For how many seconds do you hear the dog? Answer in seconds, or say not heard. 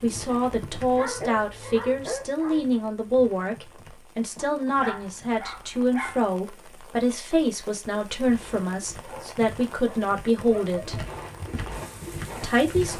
5 s.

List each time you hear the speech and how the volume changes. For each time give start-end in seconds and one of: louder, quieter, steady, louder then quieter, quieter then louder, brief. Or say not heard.
0.0-11.0 steady
12.4-12.9 brief.